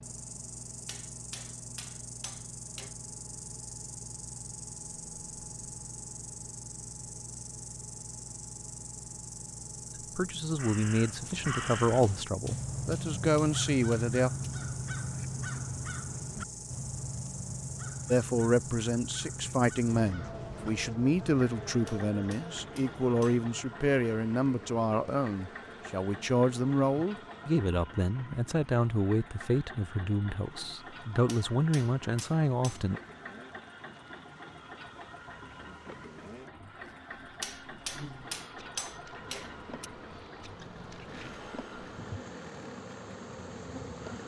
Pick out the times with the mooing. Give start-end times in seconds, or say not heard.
not heard.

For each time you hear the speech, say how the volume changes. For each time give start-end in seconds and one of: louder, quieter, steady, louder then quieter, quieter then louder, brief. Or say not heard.
10.2-14.3 quieter then louder
18.1-33.0 steady.